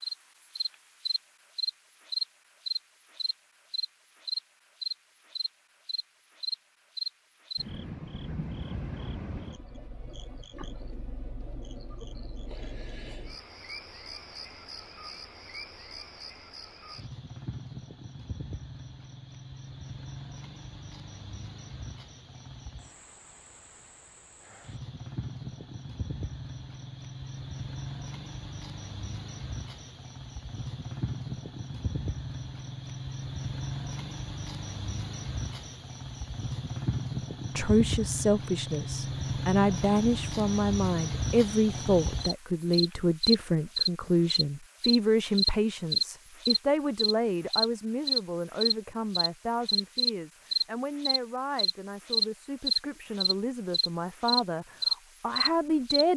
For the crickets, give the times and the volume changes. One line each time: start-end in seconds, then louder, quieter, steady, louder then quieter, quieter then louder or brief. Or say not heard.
0.0-56.0 quieter then louder.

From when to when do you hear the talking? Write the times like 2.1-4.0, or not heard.
37.5-56.1.